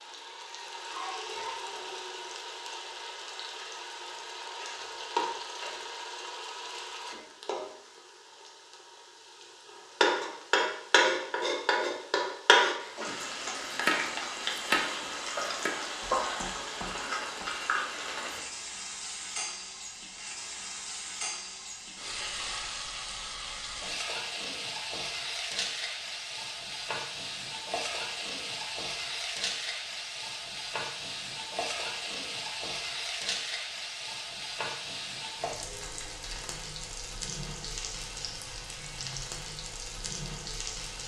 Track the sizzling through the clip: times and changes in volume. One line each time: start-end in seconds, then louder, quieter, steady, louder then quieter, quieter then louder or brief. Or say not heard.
0.0-41.0 louder then quieter.